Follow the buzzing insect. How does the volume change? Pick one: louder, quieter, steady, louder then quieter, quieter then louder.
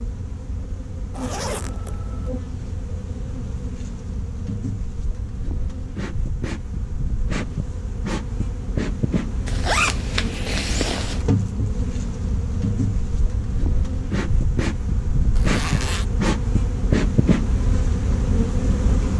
louder.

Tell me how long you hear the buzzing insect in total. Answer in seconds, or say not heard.
19 s.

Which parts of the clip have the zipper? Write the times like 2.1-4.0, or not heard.
1.1-2.3, 9.4-11.2, 15.3-16.1.